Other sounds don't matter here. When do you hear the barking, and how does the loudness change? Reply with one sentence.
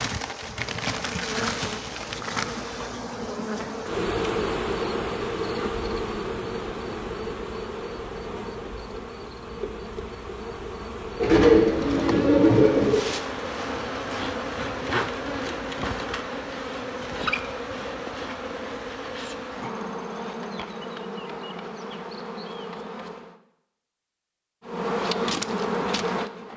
You can't hear the barking here.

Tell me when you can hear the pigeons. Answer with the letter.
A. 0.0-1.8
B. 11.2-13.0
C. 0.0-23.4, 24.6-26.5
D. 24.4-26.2
B.